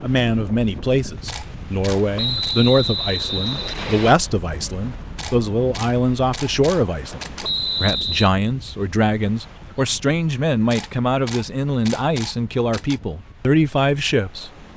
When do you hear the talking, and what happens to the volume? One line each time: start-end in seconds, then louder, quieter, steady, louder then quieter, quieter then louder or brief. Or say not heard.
0.0-14.5 steady.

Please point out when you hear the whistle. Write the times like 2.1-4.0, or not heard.
2.1-4.2, 7.4-8.3.